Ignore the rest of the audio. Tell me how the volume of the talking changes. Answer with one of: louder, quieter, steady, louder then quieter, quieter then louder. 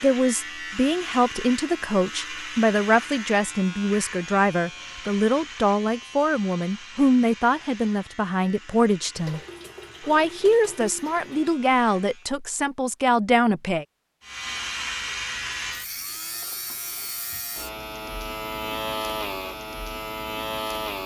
steady.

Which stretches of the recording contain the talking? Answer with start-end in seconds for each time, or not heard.
0.0-9.4, 10.1-13.8.